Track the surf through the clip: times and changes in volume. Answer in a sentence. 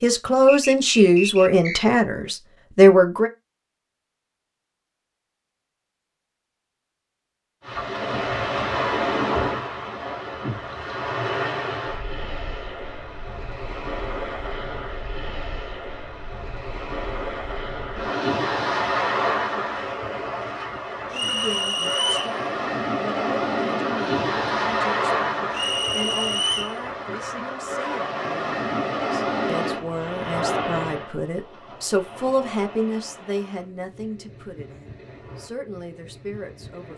The surf can be heard from 7.6 to 36.9 s, getting quieter.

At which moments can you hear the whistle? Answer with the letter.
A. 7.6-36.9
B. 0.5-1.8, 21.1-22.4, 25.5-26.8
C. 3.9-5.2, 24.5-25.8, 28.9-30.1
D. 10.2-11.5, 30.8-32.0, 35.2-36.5
B.